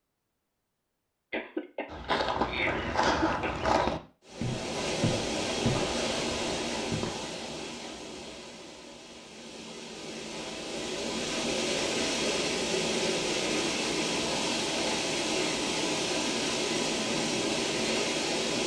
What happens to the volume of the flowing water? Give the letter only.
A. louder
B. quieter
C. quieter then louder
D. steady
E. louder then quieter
C.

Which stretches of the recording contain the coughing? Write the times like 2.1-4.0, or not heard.
1.3-4.0.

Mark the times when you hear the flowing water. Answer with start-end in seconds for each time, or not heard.
4.2-18.6.